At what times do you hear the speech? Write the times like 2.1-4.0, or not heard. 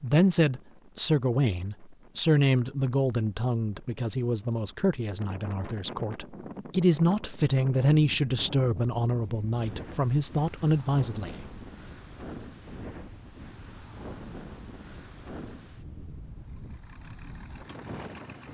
0.0-11.4.